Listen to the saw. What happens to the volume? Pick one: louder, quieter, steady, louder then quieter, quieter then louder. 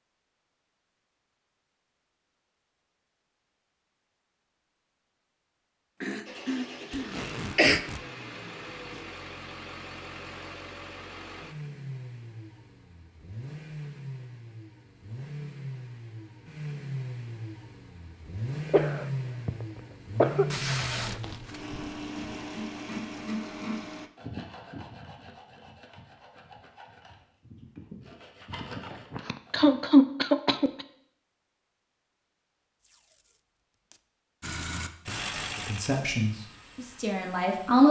quieter then louder.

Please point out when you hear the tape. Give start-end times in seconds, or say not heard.
6.9-8.1, 20.5-21.6, 32.8-34.0.